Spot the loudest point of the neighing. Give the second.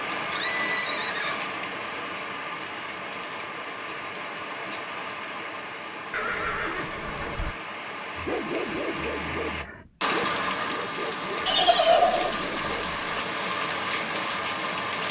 12 s.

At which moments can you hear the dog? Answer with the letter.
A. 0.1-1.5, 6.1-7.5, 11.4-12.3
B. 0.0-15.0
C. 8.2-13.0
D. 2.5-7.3
C.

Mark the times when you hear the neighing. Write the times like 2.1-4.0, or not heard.
0.1-1.5, 6.1-7.5, 11.4-12.3.